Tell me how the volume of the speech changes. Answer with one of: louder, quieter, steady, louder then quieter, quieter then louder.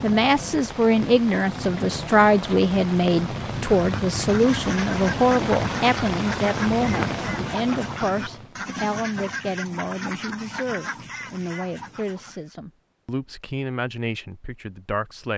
quieter.